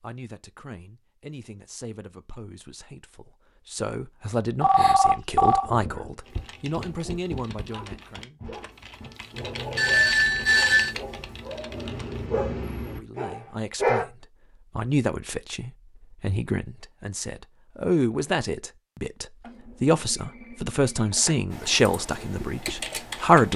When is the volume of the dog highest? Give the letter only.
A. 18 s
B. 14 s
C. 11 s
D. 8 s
B.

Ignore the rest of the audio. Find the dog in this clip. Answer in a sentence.
You can hear the dog from 5.5 to 14.1 s.